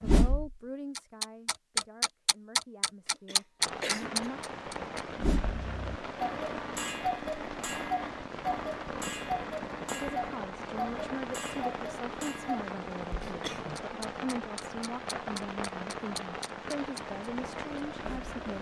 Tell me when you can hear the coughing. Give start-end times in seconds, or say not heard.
3.0-4.2, 13.2-13.7.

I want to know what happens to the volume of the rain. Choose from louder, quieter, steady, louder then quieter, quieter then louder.
steady.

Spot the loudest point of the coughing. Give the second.
4 s.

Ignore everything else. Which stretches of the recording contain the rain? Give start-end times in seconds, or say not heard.
3.5-18.5.